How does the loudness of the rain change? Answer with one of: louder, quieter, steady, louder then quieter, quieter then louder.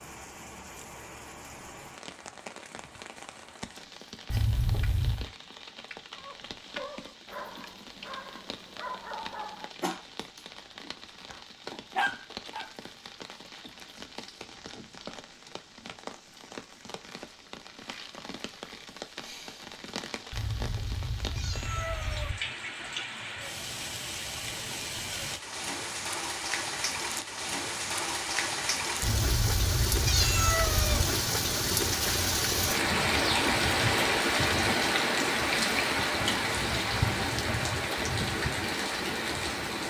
louder.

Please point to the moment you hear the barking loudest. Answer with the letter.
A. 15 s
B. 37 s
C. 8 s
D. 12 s
D.